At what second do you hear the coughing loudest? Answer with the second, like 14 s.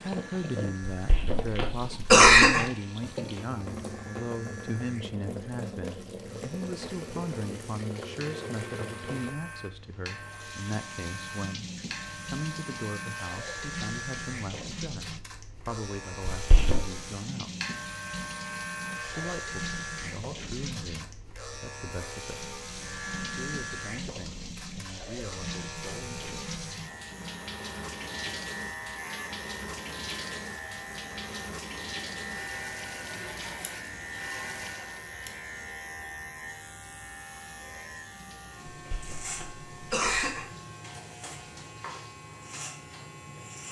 2 s.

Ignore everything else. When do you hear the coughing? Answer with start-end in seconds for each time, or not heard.
0.9-2.7, 16.3-16.9, 38.8-40.5.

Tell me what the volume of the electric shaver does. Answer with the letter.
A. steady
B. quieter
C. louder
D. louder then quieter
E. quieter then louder
C.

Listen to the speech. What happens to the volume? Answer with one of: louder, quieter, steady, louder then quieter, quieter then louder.
quieter.